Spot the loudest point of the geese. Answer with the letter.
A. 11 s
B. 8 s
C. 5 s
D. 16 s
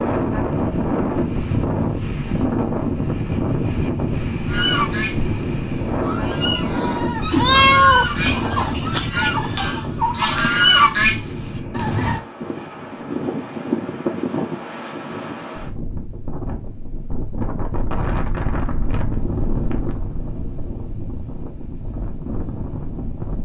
A.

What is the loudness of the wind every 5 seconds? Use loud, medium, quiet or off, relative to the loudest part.
loud, loud, medium, medium, medium.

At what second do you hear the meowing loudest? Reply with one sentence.
The volume of the meowing peaks at 8 seconds.